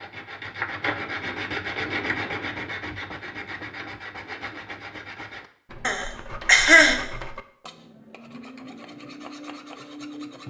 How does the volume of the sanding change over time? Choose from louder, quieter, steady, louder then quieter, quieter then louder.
quieter.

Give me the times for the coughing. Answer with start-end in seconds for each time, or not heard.
5.8-7.0.